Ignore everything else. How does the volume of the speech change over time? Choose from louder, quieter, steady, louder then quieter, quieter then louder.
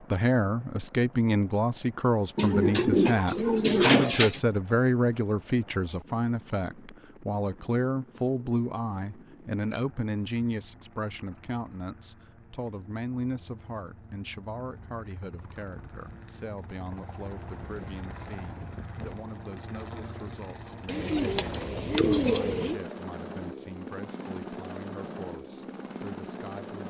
quieter.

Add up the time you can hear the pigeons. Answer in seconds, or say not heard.
4 s.